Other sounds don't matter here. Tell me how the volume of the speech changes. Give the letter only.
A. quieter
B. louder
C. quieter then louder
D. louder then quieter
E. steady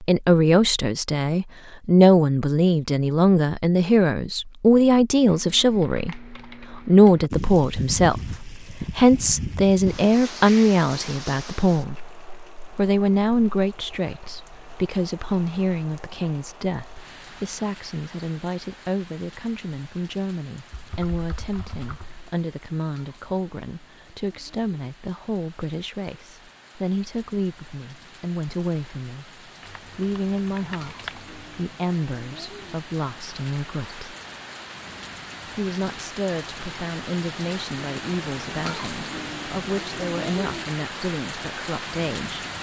A.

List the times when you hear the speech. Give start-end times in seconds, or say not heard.
0.0-11.9, 12.8-34.1, 35.5-42.5.